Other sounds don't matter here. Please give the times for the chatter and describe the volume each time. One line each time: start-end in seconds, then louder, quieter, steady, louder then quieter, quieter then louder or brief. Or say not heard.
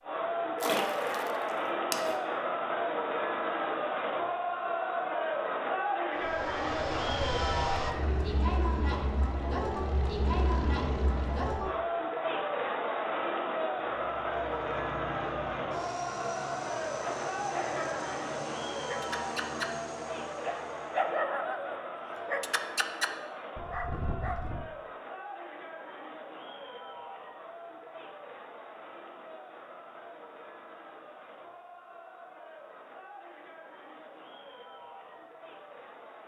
0.0-36.2 quieter.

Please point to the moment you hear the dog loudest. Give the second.
21 s.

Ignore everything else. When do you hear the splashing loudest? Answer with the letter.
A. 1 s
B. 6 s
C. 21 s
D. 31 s
A.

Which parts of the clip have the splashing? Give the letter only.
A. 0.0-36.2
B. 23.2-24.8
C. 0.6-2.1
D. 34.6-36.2
C.